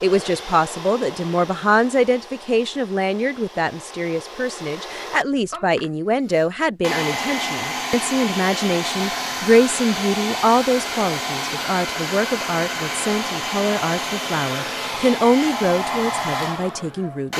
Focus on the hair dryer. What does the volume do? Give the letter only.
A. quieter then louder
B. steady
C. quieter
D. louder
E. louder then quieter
D.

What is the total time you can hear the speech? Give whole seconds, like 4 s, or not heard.
17 s.